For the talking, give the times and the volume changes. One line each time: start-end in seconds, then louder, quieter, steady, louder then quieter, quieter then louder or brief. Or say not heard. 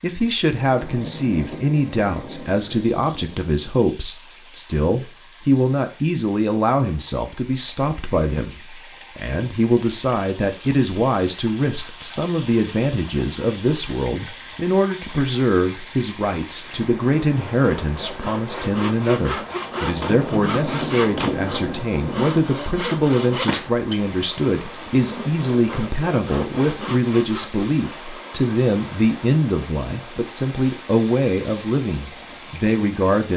0.0-33.3 steady.